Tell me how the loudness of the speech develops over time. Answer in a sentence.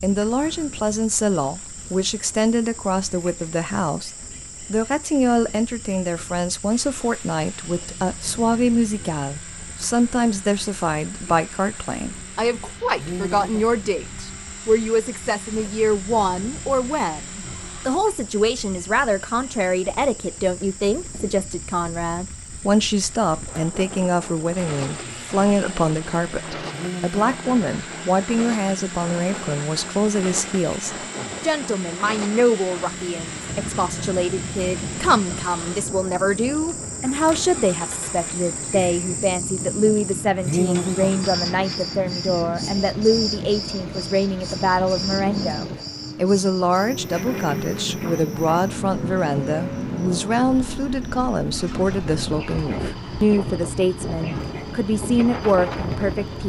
The volume of the speech stays about the same.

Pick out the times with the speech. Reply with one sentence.
The speech can be heard from 0.0 to 4.1 s and from 4.7 to 56.4 s.